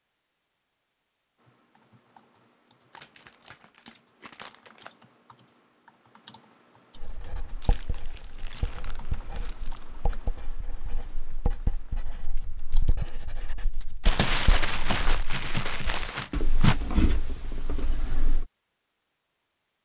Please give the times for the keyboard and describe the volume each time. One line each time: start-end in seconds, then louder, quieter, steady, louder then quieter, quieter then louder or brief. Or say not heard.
1.4-12.9 louder then quieter.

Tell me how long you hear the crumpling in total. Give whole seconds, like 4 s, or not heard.
7 s.